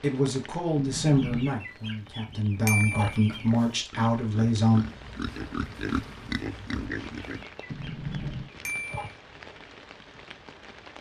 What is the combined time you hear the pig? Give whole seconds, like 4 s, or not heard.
5 s.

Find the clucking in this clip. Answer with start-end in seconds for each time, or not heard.
1.1-3.6, 7.2-9.2.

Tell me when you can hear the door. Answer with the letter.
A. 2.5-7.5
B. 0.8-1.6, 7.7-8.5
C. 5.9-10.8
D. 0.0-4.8
B.